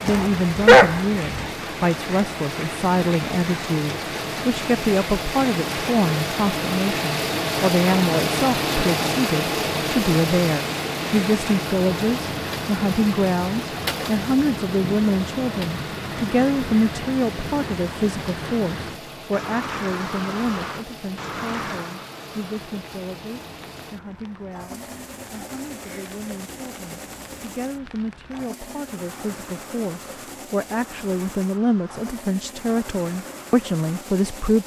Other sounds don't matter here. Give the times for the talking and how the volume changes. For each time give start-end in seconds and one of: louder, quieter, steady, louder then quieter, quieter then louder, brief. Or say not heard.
0.0-34.6 quieter then louder.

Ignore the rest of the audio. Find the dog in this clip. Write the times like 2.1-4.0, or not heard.
0.1-1.4.